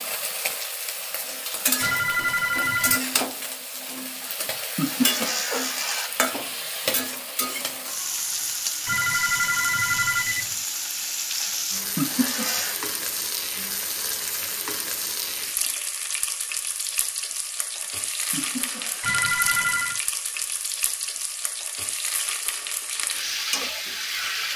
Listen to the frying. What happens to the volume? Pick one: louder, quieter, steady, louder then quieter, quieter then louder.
steady.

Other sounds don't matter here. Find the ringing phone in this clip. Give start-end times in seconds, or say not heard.
1.8-3.0, 8.8-10.6, 19.0-20.0.